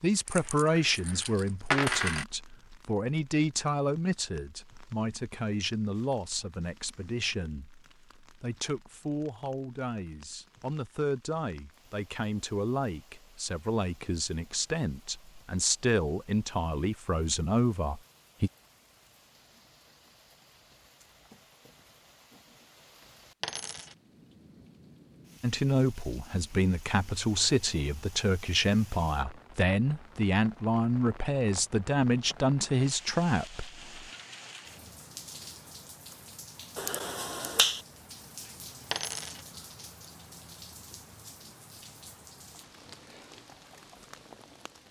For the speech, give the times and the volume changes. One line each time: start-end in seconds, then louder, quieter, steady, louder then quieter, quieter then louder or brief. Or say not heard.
0.0-18.5 quieter then louder
25.4-34.0 steady.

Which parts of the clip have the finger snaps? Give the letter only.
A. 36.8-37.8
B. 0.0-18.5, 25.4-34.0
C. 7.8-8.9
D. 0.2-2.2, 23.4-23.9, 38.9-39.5
A.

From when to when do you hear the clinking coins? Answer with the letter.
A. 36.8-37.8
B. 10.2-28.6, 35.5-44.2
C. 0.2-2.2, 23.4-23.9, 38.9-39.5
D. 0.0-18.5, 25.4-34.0
C.